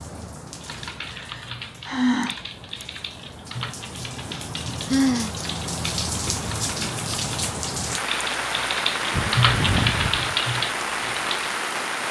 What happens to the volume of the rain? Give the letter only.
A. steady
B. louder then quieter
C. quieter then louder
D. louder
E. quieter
D.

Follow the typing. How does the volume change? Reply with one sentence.
The loudness of the typing goes up.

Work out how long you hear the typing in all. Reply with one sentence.
You can hear the typing for 11 seconds altogether.